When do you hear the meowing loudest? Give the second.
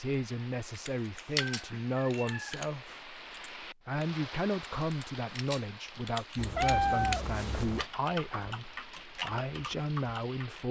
7 s.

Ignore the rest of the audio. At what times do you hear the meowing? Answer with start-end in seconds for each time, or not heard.
1.4-2.7, 6.3-7.8.